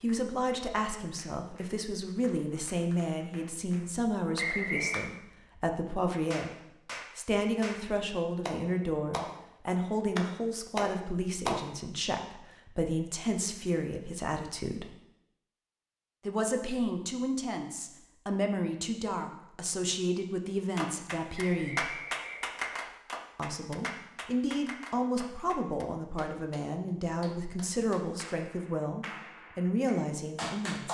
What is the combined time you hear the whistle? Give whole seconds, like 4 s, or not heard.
2 s.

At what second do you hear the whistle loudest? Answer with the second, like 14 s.
5 s.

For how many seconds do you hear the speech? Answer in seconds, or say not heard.
27 s.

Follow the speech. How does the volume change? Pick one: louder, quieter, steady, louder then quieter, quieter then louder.
steady.